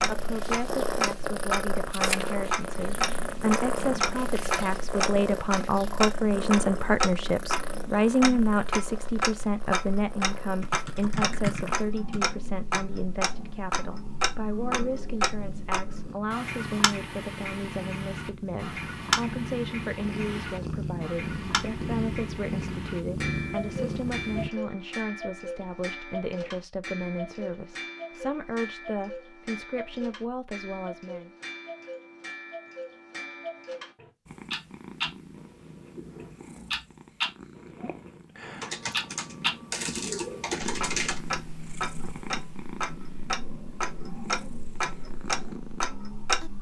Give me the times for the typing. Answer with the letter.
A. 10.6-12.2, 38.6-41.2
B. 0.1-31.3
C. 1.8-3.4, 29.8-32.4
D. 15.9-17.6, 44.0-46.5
A.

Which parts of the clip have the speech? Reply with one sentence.
You can hear the speech from 0.1 to 31.3 s.